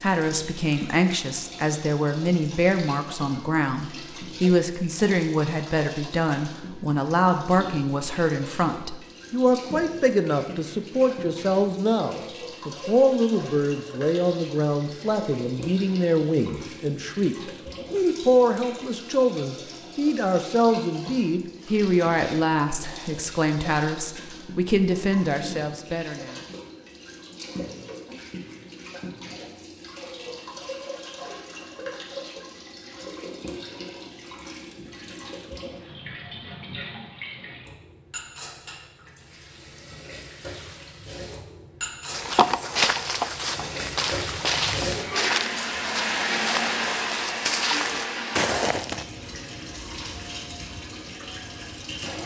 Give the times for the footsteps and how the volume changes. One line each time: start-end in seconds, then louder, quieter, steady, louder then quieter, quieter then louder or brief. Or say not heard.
42.1-49.0 quieter then louder.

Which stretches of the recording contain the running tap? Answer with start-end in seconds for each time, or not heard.
0.0-52.2.